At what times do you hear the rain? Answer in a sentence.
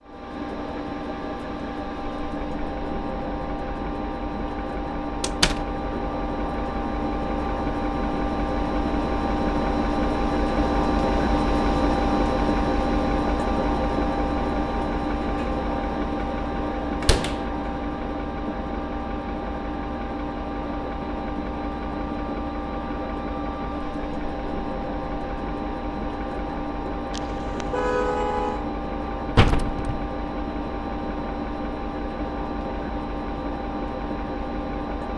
You can't hear the rain here.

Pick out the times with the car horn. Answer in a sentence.
You can hear the car horn from 27.1 to 28.6 s.